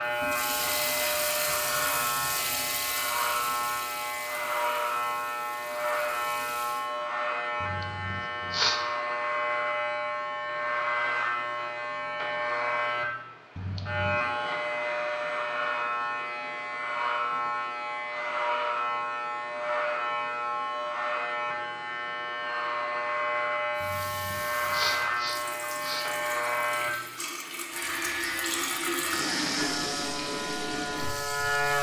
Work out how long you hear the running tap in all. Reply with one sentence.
You can hear the running tap for 15 seconds altogether.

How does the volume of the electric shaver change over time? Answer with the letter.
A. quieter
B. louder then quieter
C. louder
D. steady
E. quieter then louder
D.